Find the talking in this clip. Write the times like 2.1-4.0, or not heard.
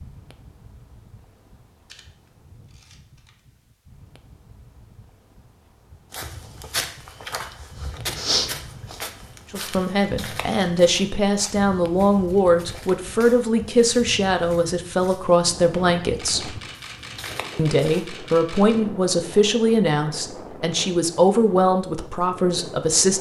9.5-16.6, 17.6-23.1.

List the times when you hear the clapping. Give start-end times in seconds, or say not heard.
not heard.